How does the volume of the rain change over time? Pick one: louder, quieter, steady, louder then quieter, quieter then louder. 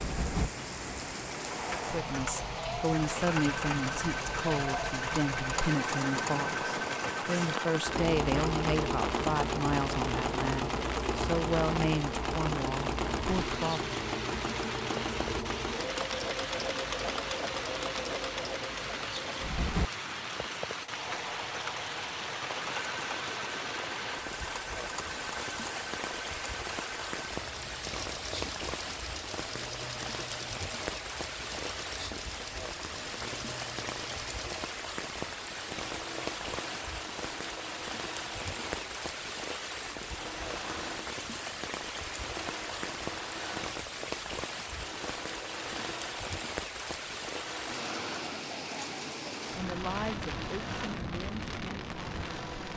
steady.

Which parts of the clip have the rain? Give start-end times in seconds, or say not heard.
0.0-52.7.